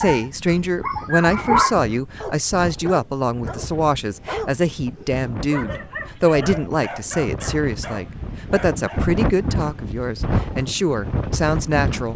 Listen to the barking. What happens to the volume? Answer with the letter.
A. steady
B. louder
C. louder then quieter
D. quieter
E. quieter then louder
D.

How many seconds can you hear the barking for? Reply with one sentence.
The barking can be heard for 9 seconds in total.